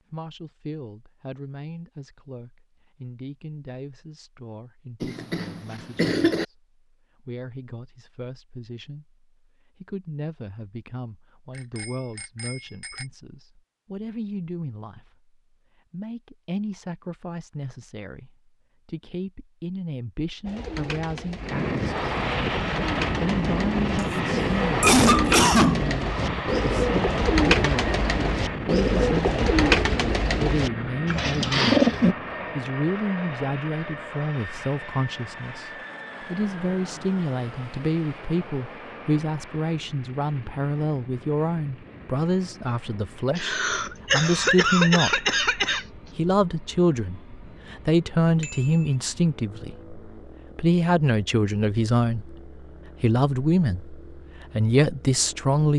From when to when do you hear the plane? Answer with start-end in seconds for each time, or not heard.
21.4-55.7.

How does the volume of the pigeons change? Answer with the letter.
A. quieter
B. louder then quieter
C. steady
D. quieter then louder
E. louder
E.